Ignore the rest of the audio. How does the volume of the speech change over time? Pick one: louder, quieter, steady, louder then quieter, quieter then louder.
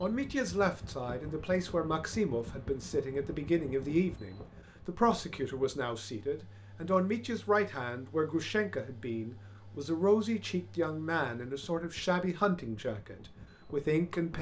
steady.